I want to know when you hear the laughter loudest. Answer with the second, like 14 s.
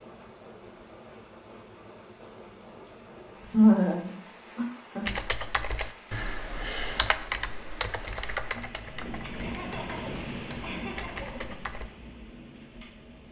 4 s.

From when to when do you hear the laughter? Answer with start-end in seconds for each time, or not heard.
3.5-5.1, 9.2-11.6.